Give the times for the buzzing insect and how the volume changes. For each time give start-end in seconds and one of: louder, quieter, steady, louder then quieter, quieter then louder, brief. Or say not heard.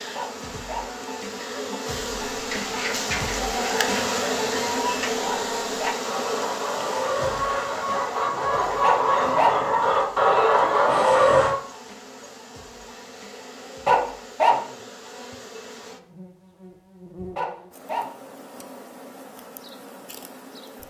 0.0-20.8 quieter.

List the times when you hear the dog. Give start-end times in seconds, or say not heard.
0.1-0.8, 5.2-6.0, 8.8-9.7, 13.8-14.6, 17.4-18.1.